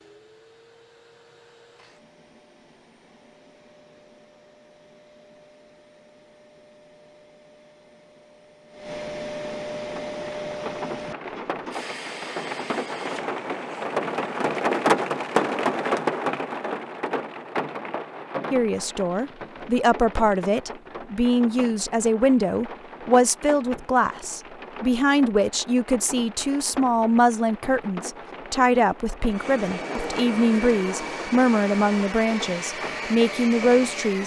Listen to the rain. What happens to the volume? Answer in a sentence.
The volume of the rain goes down.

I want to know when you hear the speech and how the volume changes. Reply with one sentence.
The speech can be heard from 18.5 to 34.2 s, at a steady volume.